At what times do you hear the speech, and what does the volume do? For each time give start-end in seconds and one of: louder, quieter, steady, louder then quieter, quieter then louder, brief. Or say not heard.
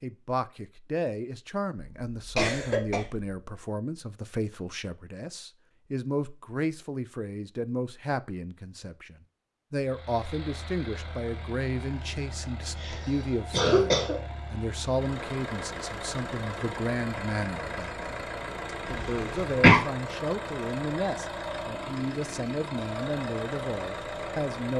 0.0-24.7 steady.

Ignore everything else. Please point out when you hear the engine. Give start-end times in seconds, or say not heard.
9.8-24.7.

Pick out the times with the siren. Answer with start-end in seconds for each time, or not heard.
not heard.